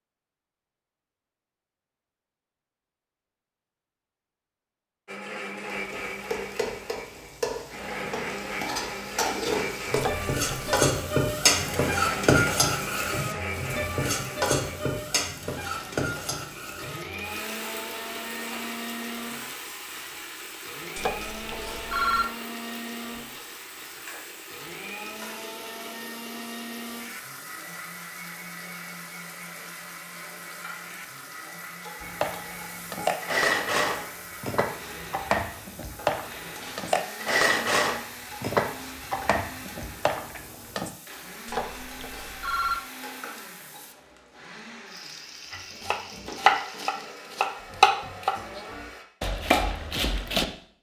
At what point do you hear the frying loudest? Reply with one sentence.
The volume of the frying peaks at 12 seconds.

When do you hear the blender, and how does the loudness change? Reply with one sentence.
The blender can be heard from 5.0 to 49.0 s, getting quieter.